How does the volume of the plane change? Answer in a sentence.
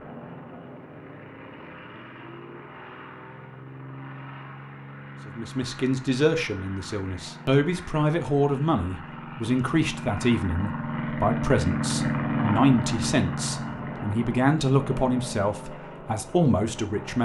The loudness of the plane goes up, then down.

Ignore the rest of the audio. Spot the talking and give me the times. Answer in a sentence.
You can hear the talking from 5.2 to 17.2 s.